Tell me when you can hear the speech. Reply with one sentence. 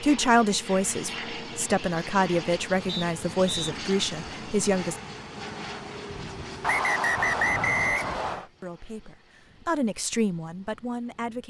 You can hear the speech from 0.0 to 5.0 s and from 8.4 to 11.4 s.